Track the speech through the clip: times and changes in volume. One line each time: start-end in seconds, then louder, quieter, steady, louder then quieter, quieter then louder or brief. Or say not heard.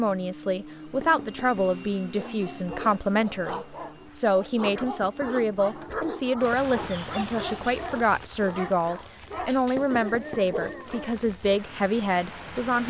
0.0-12.8 steady.